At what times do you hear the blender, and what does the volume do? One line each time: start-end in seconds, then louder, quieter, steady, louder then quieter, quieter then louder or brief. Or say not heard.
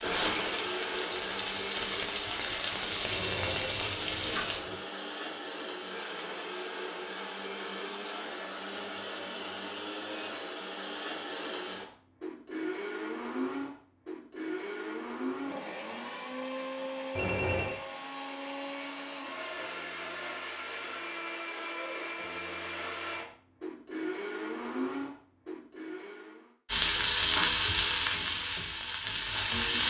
0.0-26.6 steady.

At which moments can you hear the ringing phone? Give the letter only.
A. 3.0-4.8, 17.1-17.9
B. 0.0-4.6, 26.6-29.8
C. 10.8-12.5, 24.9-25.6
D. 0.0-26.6
A.